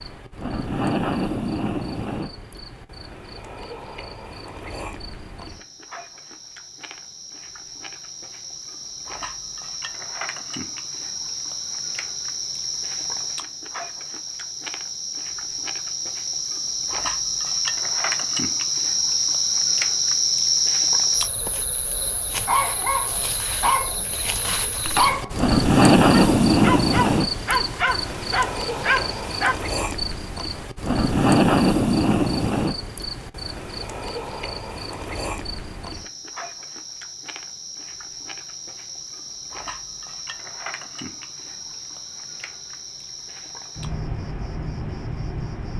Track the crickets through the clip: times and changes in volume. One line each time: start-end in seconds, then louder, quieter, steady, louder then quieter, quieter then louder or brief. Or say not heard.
0.0-45.7 louder then quieter.